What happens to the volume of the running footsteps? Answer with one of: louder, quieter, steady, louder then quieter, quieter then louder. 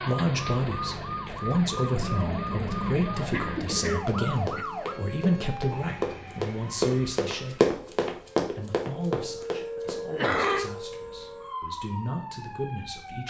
louder then quieter.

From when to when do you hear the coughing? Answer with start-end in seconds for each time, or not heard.
1.9-4.7, 10.1-10.7.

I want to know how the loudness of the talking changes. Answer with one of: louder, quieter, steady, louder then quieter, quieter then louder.
quieter.